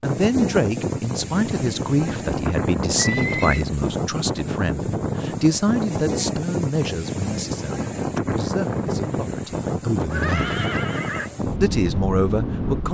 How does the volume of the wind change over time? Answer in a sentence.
The loudness of the wind stays about the same.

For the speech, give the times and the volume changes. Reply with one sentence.
You can hear the speech from 0.0 to 10.6 s, getting quieter; and briefly from 11.6 to 12.8 s.